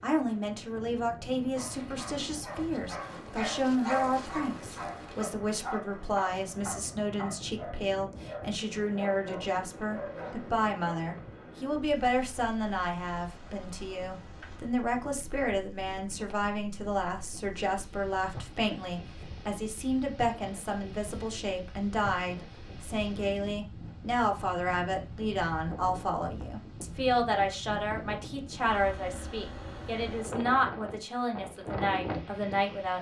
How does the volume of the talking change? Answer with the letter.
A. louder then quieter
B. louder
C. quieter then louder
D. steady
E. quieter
D.